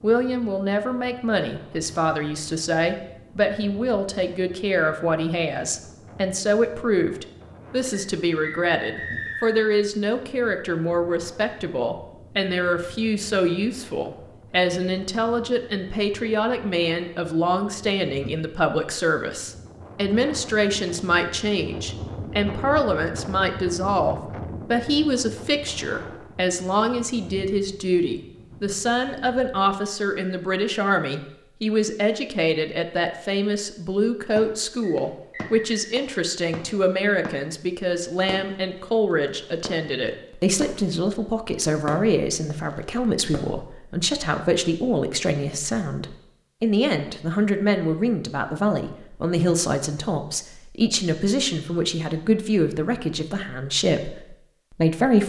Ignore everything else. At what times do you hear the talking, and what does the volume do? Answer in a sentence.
You can hear the talking from 0.0 to 55.2 s, at a steady volume.